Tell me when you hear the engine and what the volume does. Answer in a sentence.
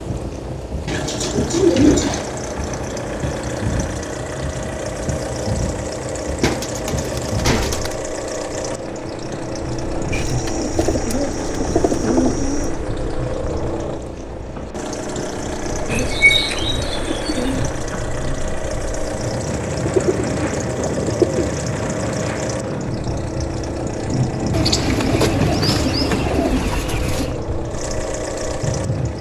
You can hear the engine from 0.0 to 29.1 s, at a steady volume.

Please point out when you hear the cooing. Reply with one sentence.
You can hear the cooing from 0.8 to 2.3 s, from 6.4 to 8.0 s, from 10.1 to 12.7 s, from 15.8 to 17.6 s, from 19.9 to 21.6 s and from 24.5 to 27.4 s.